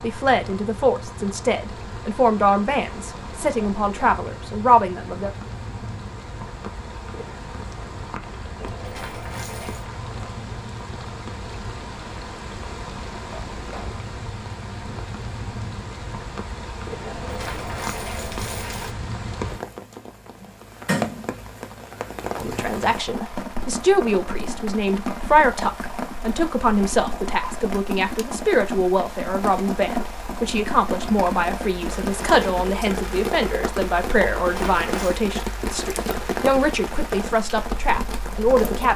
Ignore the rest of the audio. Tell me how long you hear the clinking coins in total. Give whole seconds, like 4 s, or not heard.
4 s.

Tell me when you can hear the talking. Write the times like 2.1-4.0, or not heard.
0.0-5.3, 22.4-38.9.